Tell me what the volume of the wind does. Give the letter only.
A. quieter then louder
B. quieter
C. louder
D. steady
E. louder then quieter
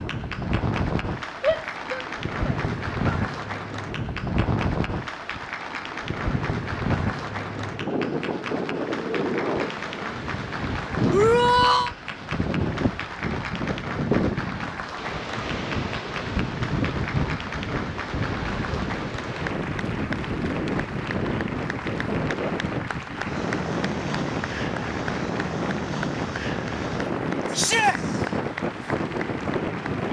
D.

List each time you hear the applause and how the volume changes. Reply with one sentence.
The applause can be heard from 0.0 to 30.0 s, at a steady volume.